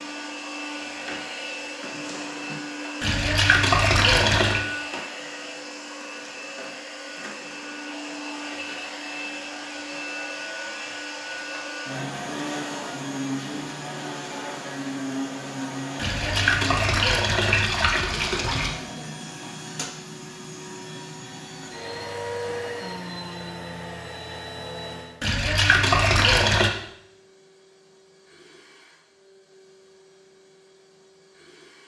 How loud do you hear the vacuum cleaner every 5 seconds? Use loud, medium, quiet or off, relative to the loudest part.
loud, loud, loud, loud, loud, quiet, quiet.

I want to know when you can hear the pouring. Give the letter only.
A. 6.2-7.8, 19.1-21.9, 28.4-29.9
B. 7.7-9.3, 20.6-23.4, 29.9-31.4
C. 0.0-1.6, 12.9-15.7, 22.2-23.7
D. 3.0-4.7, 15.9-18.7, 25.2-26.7
D.